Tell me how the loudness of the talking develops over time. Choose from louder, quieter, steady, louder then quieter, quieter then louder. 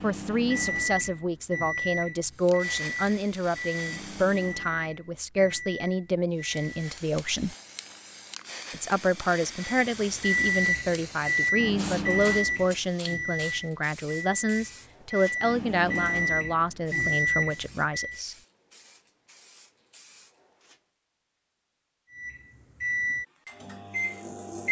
steady.